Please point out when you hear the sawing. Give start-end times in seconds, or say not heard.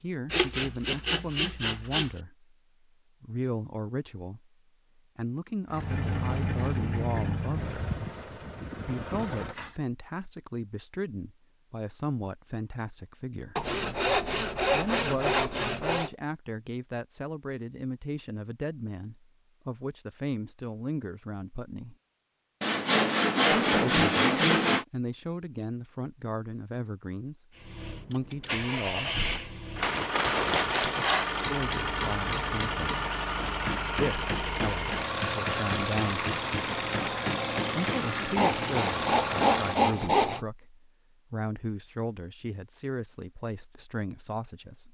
0.3-2.1, 13.6-16.1, 22.6-24.9, 29.8-31.5, 38.4-40.4.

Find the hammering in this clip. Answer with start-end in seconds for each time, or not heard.
29.9-38.4.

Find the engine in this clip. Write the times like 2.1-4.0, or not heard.
5.7-9.8, 27.6-39.9.